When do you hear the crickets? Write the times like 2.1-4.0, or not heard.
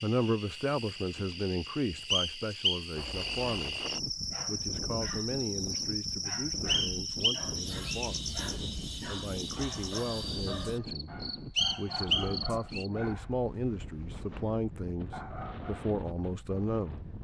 0.0-13.1.